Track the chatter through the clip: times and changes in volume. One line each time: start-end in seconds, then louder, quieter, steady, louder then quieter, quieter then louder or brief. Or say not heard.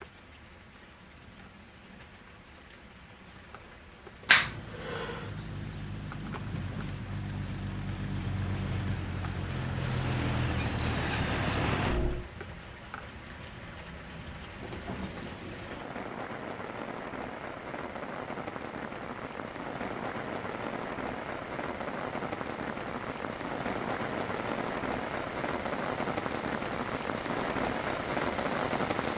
not heard.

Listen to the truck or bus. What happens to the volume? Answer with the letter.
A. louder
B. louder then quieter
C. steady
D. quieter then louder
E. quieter
A.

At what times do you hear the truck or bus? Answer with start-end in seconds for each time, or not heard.
4.2-12.2.